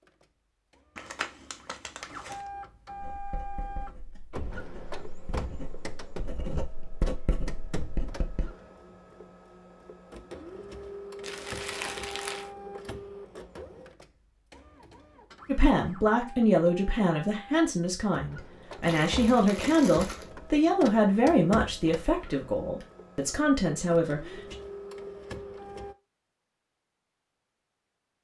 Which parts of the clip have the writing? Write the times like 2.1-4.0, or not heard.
3.0-8.6.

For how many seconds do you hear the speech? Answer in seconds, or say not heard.
9 s.